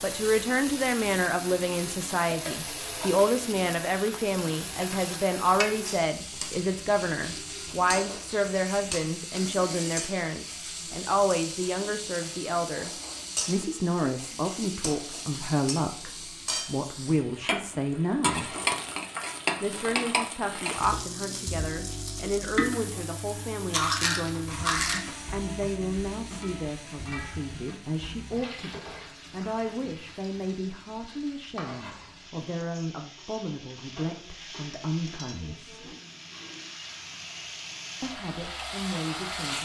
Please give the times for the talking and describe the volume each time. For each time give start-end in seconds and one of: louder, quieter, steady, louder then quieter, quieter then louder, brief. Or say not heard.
0.0-18.6 steady
19.6-35.8 steady
38.0-39.5 brief.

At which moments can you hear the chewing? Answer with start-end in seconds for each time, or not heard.
23.7-25.1.